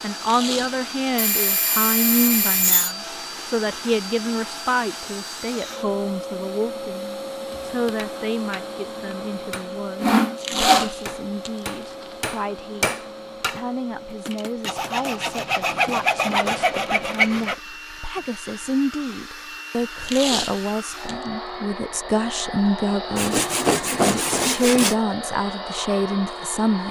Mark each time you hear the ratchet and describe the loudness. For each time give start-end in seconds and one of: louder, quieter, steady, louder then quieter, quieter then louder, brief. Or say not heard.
not heard.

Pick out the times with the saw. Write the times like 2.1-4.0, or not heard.
1.1-3.0, 10.0-10.9, 14.7-17.6, 23.1-24.9.